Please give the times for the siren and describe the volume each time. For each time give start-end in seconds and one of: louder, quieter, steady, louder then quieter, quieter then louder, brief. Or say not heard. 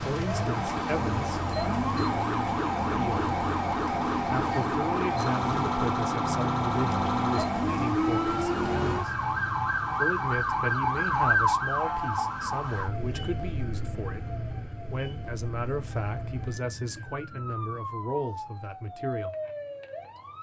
0.0-20.3 quieter.